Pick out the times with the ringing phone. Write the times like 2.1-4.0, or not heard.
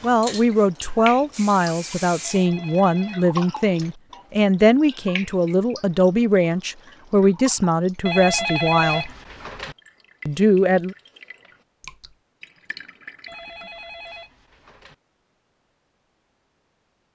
2.2-4.0, 8.1-9.8, 13.2-14.9.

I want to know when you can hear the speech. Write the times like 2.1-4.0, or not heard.
0.0-9.1, 10.2-10.9.